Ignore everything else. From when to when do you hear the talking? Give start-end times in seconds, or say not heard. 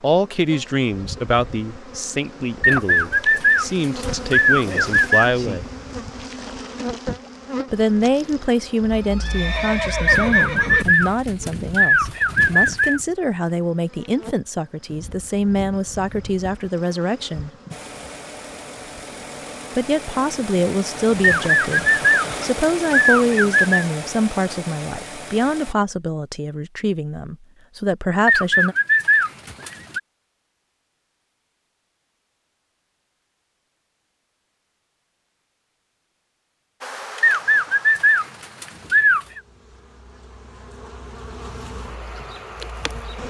0.0-5.7, 7.7-17.5, 19.8-28.8.